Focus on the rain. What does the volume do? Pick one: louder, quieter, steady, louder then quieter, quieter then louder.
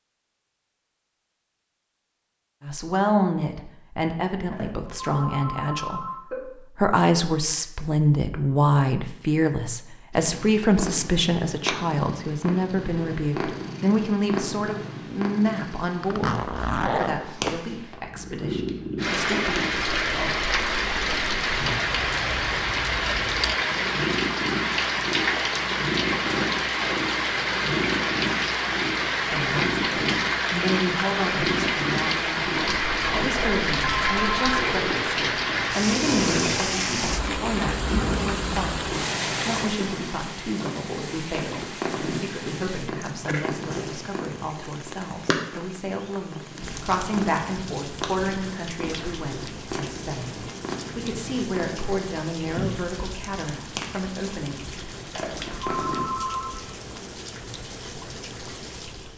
quieter.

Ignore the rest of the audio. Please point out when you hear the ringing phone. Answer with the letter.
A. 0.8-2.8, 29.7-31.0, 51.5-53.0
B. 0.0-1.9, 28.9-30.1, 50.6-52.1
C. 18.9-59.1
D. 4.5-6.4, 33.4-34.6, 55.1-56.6
D.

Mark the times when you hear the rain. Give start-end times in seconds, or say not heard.
18.9-59.1.